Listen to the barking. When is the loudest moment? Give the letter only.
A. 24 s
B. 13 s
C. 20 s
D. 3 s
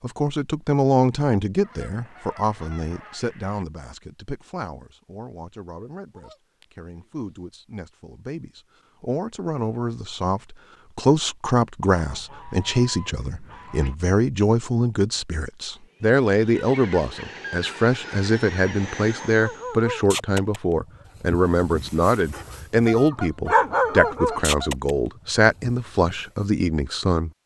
A.